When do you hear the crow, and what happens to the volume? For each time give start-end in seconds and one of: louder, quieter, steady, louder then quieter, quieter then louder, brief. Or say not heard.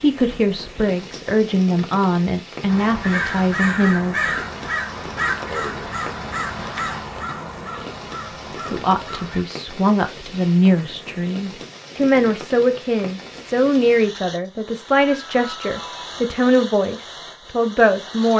2.6-9.4 quieter.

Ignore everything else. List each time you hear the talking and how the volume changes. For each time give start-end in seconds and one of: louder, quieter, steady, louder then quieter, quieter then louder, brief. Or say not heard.
0.0-4.2 steady
8.7-18.3 steady.